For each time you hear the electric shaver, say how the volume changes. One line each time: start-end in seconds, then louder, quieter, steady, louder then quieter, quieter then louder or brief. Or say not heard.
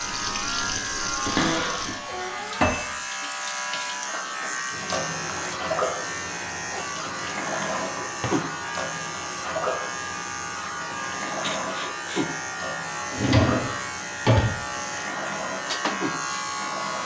0.0-17.0 steady.